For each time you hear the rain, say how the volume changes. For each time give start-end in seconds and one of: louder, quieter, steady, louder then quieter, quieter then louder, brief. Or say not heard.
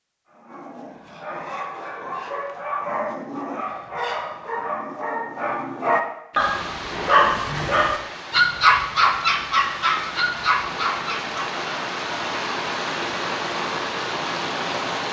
6.3-15.0 louder.